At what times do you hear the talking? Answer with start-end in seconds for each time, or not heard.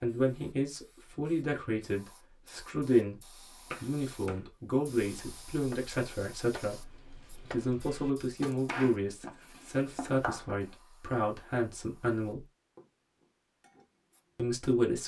0.0-12.4, 14.3-15.0.